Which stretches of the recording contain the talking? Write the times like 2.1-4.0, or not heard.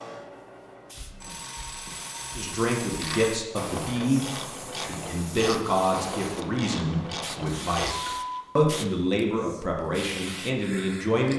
2.4-11.3.